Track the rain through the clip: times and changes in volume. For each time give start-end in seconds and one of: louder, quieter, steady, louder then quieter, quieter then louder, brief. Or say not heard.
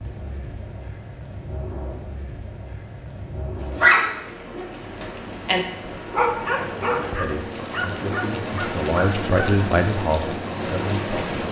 0.0-11.4 louder.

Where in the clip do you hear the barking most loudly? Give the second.
4 s.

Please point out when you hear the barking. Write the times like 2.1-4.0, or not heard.
3.8-9.5.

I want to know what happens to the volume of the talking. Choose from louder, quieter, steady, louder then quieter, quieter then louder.
louder then quieter.